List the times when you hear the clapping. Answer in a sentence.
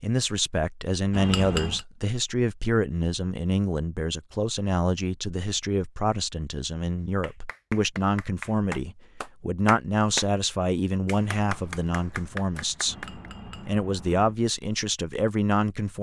You can hear the clapping from 7.2 to 10.2 s and from 11.1 to 13.2 s.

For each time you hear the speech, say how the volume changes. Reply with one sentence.
You can hear the speech from 0.0 to 15.9 s, at a steady volume.